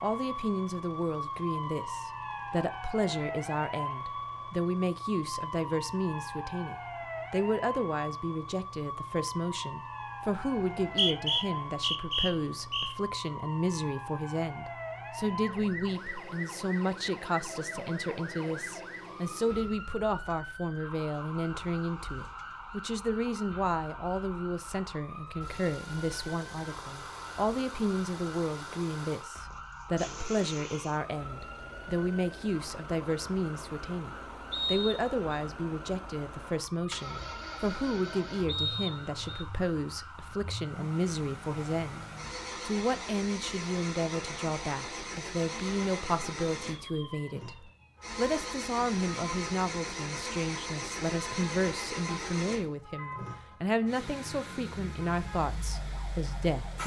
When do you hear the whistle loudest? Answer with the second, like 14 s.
11 s.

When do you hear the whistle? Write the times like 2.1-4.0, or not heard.
10.8-12.9, 34.5-35.2, 38.5-39.5.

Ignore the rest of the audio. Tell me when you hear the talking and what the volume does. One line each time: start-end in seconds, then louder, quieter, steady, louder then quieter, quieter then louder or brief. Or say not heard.
0.0-56.8 steady.